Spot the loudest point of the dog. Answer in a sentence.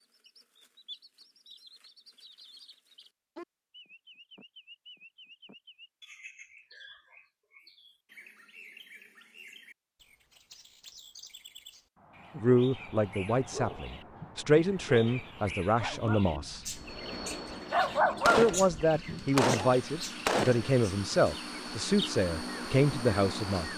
The loudest moment of the dog is at 18 seconds.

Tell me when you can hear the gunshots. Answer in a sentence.
You can hear the gunshots from 18.2 to 21.3 s.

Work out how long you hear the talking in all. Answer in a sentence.
You can hear the talking for 10 seconds altogether.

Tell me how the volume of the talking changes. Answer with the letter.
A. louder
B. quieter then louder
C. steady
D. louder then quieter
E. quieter
C.